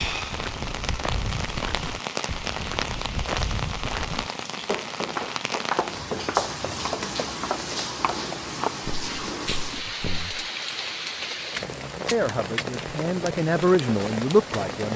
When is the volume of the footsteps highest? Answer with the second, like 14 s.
6 s.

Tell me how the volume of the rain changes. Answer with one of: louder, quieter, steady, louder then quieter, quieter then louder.
steady.